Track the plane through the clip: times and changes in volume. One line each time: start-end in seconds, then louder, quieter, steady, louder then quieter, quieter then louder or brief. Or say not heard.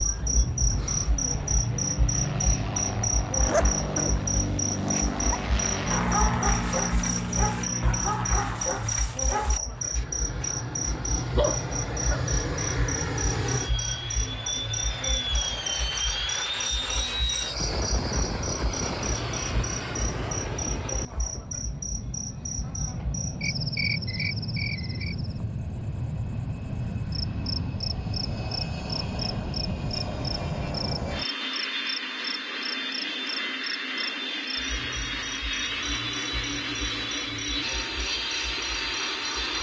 0.0-39.5 steady.